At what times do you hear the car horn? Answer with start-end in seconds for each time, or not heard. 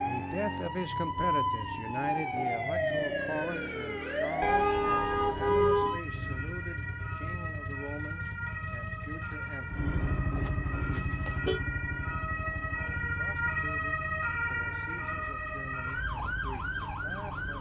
4.4-6.0, 9.8-11.6.